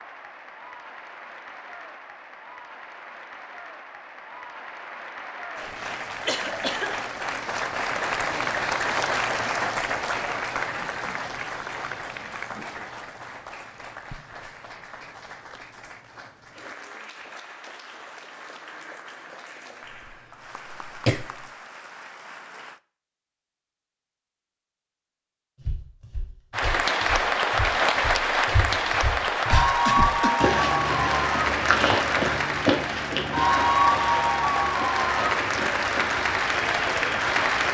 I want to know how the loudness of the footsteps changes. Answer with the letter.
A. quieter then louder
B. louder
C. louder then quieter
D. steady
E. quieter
C.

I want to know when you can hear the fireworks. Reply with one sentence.
You can't hear the fireworks here.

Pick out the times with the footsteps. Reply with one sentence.
You can hear the footsteps from 25.6 to 37.5 s.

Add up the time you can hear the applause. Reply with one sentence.
You can hear the applause for 34 seconds altogether.